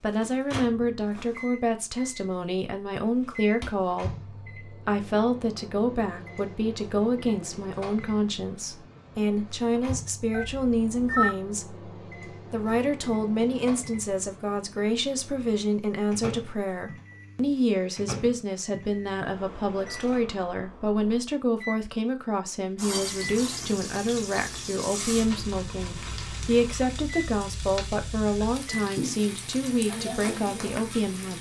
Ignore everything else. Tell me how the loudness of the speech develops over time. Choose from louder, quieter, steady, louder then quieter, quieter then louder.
steady.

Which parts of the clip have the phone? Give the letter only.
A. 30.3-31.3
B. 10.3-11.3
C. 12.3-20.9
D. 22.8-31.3
B.